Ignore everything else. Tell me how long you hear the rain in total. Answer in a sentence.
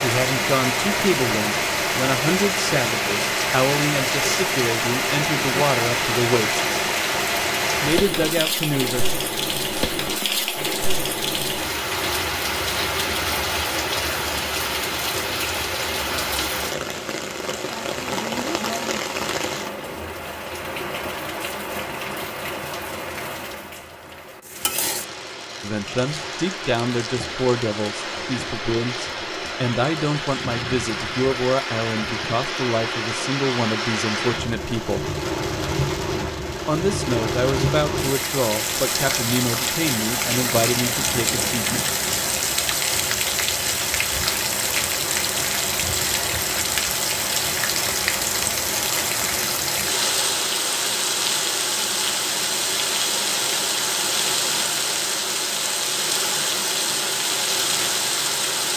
You can hear the rain for 59 seconds altogether.